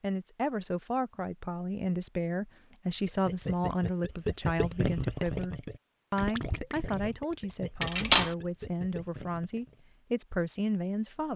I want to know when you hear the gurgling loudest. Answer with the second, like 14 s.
5 s.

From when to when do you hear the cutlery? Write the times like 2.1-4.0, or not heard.
7.8-8.3.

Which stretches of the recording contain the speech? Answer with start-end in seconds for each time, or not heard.
0.0-11.3.